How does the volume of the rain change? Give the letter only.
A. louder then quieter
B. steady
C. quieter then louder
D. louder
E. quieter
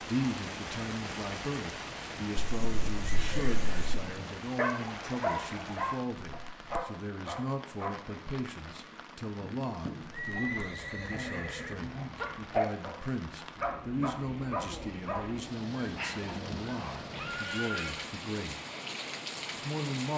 C.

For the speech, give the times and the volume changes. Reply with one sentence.
You can hear the speech from 0.0 to 18.6 s, at a steady volume; and briefly from 19.6 to 20.1 s.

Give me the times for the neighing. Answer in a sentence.
You can hear the neighing from 2.4 to 4.0 s, from 9.4 to 11.8 s and from 16.2 to 18.1 s.